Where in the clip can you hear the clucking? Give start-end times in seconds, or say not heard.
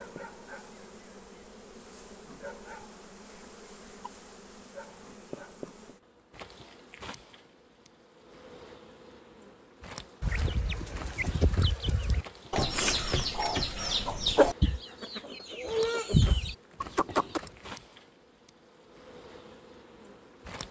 10.2-17.4.